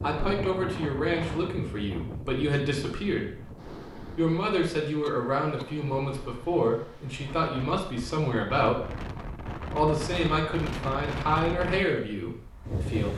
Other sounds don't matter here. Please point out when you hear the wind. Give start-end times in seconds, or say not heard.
0.0-13.1.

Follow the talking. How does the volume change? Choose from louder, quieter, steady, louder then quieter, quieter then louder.
steady.